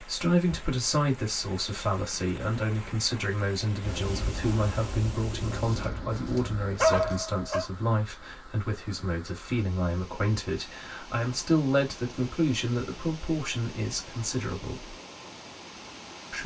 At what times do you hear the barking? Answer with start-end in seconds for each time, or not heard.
5.7-7.7.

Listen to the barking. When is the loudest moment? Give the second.
7 s.